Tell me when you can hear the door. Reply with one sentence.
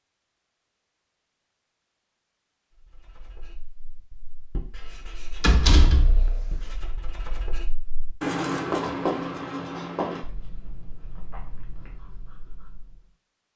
The door can be heard from 5.4 to 6.7 s.